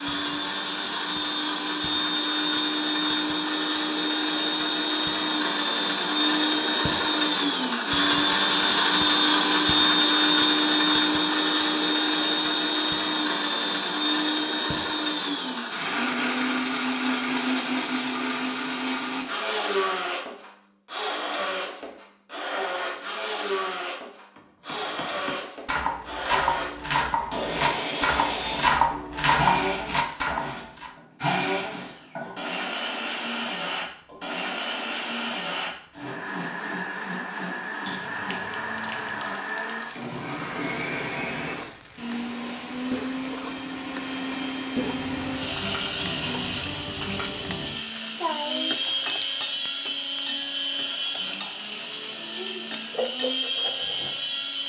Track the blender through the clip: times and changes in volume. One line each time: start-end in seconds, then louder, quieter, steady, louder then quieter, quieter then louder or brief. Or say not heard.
0.0-54.6 quieter.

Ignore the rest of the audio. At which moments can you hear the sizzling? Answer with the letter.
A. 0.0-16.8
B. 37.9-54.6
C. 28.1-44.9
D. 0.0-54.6
B.